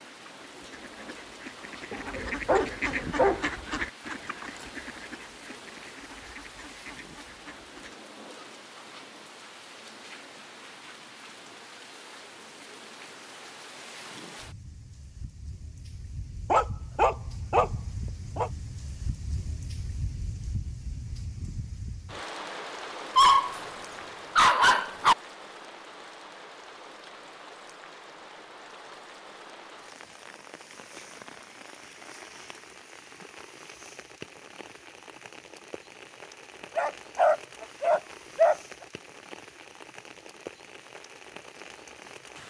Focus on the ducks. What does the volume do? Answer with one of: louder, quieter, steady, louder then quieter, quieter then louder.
louder then quieter.